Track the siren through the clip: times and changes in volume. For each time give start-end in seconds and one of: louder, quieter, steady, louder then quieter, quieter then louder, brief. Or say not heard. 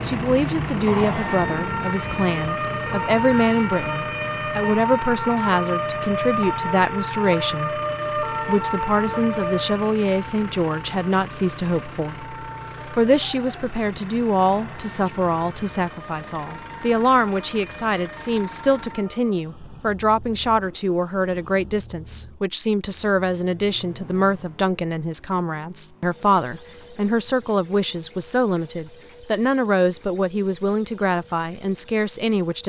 0.0-19.4 quieter.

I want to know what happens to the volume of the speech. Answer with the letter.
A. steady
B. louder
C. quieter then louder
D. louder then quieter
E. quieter
A.